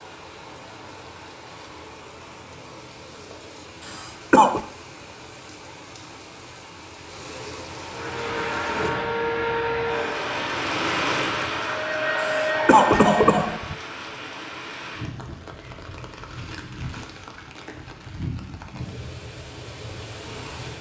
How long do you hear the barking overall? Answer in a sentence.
The barking can't be heard in this clip.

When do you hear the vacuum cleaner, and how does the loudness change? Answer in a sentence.
The vacuum cleaner can be heard from 7.9 to 13.6 s, getting quieter then louder.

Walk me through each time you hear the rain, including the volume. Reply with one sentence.
You can hear the rain from 0.0 to 20.7 s, getting louder then quieter.